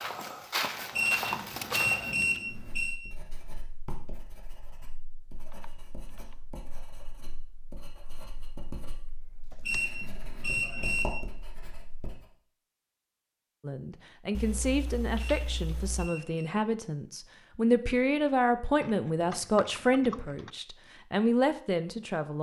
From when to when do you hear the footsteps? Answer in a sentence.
You can hear the footsteps from 0.0 to 2.1 s.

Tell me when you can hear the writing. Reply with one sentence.
The writing can be heard from 2.5 to 12.3 s.